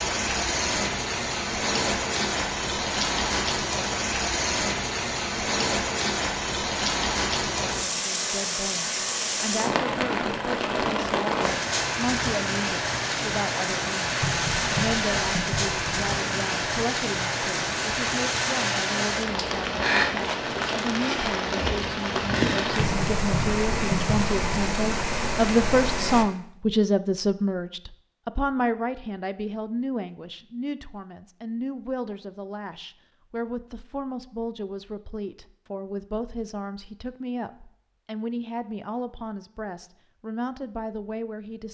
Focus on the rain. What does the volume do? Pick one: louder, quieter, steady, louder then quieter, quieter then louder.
steady.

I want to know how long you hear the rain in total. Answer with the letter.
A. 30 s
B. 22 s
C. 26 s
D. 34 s
C.